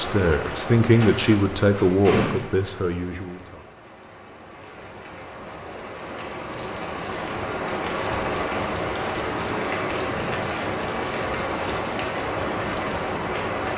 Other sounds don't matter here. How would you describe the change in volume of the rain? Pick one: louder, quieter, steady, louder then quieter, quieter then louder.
quieter then louder.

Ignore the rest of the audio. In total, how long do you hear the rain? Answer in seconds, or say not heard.
14 s.